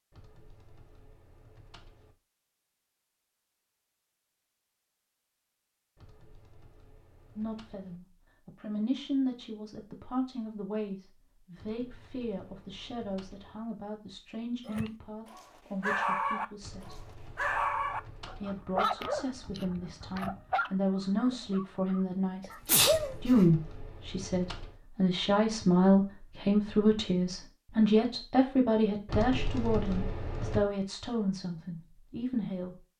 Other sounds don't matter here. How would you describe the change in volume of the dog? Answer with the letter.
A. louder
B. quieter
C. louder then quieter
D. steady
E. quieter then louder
B.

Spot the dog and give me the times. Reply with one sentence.
The dog can be heard from 14.7 to 23.5 s.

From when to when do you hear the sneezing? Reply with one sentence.
The sneezing can be heard from 22.4 to 23.4 s.